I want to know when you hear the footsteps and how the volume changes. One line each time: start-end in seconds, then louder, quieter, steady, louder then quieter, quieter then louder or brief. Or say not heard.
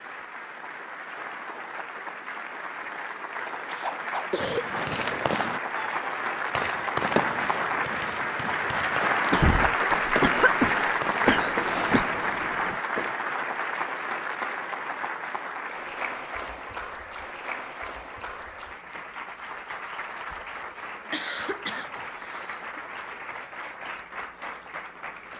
not heard.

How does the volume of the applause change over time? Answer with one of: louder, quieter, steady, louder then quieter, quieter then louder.
louder then quieter.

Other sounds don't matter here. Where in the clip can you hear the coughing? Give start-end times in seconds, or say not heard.
3.6-4.7, 9.3-12.1, 20.8-22.8.